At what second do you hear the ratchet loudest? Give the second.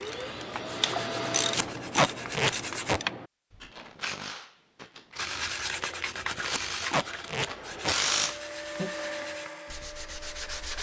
8 s.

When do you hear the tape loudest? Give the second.
2 s.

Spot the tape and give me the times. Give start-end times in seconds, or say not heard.
1.5-3.0, 6.5-8.0.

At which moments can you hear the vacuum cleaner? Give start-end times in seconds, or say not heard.
0.0-1.6, 6.8-10.7.